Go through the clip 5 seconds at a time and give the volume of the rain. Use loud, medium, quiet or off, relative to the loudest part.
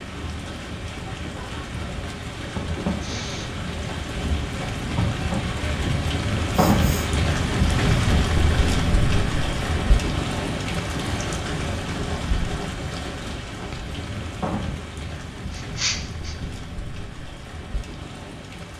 medium, loud, medium, quiet.